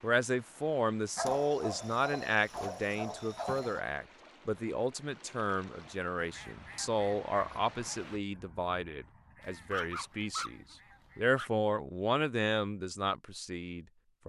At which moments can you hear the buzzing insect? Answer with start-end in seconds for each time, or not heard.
not heard.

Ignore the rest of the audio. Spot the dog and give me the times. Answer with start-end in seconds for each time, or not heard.
1.1-3.8, 9.4-11.5.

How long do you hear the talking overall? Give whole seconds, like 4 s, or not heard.
14 s.